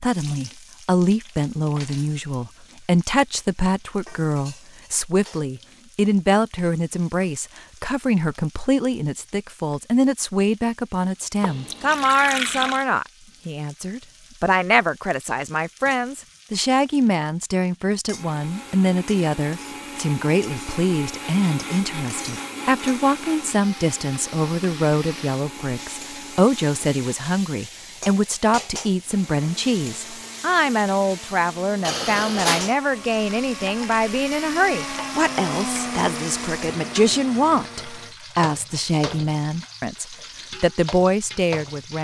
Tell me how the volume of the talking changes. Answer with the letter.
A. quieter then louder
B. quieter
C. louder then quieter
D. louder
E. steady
E.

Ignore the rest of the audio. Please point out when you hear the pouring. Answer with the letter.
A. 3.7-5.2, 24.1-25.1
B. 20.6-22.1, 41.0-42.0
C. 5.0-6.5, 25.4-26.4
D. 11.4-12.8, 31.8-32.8
D.